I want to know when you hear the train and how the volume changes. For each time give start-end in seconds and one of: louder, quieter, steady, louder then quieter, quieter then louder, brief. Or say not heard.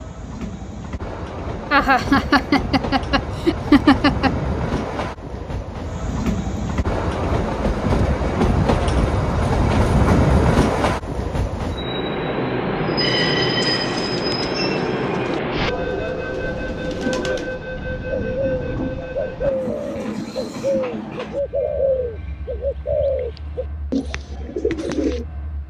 0.0-25.6 louder then quieter.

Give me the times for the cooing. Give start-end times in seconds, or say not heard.
13.6-25.2.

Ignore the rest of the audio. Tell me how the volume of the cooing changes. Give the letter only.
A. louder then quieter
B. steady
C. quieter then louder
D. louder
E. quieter
D.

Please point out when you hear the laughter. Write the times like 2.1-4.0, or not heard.
1.7-4.3.